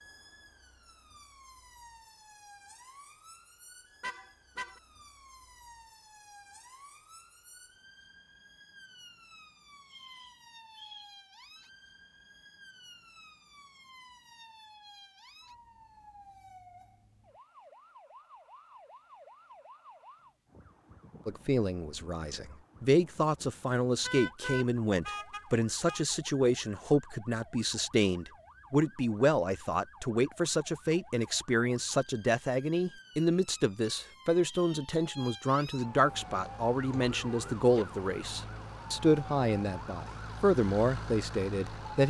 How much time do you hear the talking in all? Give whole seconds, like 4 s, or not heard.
21 s.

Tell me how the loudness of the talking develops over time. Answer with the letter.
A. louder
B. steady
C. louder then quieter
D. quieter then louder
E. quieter
B.